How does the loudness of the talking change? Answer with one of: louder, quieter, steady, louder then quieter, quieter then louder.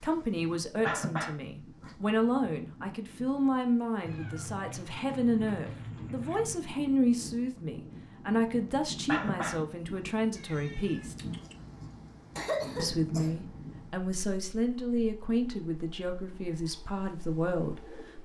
steady.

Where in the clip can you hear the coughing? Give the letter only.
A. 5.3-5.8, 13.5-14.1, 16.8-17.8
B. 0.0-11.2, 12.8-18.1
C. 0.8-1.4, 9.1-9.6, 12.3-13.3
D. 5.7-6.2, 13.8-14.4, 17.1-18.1
C.